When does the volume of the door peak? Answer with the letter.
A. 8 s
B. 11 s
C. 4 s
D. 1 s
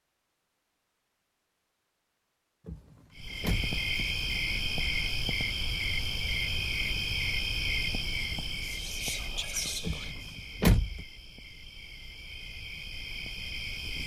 B.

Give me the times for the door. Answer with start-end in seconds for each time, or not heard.
2.6-3.8, 9.8-11.1.